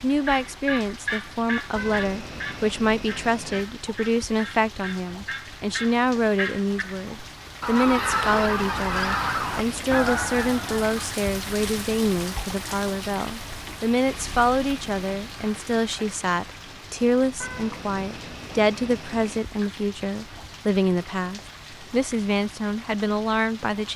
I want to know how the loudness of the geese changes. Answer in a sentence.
The volume of the geese goes down, then up.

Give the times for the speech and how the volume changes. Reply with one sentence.
The speech can be heard from 0.0 to 23.9 s, at a steady volume.